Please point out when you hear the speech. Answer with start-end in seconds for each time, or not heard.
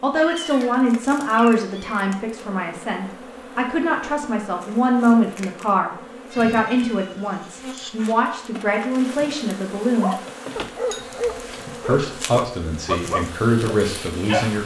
0.0-10.2, 11.8-14.6.